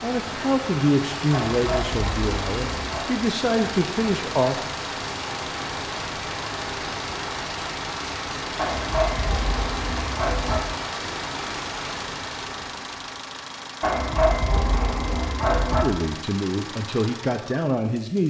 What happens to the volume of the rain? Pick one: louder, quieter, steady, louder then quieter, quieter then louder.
steady.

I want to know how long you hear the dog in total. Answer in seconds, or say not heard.
6 s.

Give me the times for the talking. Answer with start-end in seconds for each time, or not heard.
0.0-4.6, 15.8-18.2.